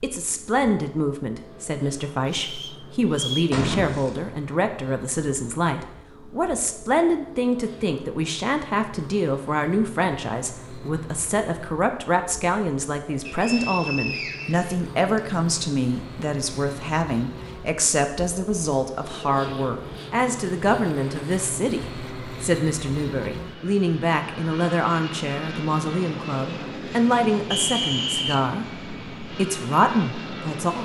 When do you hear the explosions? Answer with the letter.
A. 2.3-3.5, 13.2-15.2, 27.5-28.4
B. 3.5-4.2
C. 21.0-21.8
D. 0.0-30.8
B.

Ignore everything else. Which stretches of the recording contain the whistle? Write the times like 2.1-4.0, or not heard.
2.3-3.5, 13.2-15.2, 27.5-28.4.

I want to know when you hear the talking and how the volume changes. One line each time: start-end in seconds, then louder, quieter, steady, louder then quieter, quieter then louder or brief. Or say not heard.
0.0-30.8 steady.